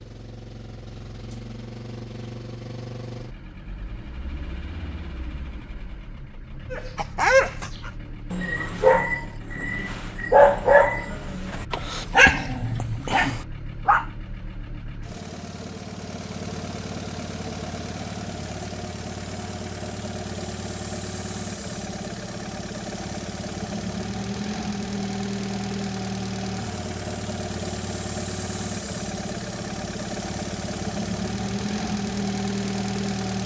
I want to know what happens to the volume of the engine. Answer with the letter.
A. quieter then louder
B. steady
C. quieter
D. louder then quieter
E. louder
E.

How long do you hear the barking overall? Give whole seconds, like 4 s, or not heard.
7 s.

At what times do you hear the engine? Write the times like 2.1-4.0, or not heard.
0.0-33.4.